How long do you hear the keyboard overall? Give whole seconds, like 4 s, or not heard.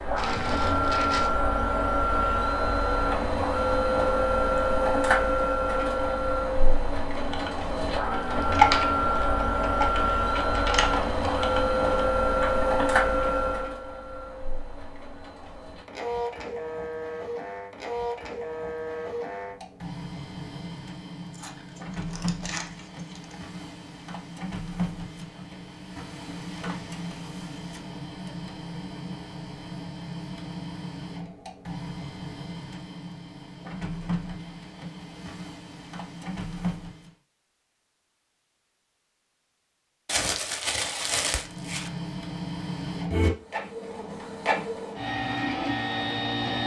6 s.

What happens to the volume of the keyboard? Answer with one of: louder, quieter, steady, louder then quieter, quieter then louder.
louder then quieter.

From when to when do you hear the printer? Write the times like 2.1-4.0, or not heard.
0.0-37.1, 41.2-46.6.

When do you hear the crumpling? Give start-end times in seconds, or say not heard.
0.1-1.3, 21.3-23.4, 40.0-41.9.